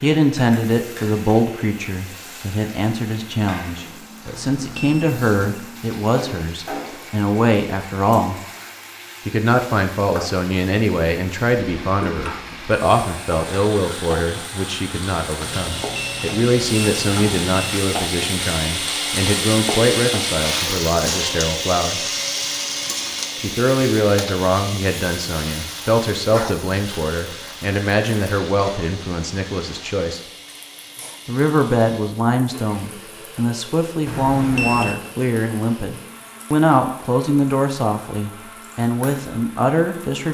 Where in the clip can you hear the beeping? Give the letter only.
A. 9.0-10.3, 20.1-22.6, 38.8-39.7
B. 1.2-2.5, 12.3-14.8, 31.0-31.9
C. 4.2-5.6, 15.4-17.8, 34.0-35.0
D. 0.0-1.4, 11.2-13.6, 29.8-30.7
C.